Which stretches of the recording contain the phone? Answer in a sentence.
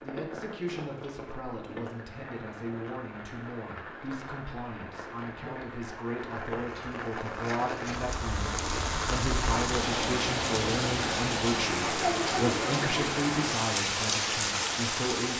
You can't hear the phone here.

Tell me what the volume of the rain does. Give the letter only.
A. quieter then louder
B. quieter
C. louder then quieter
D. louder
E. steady
D.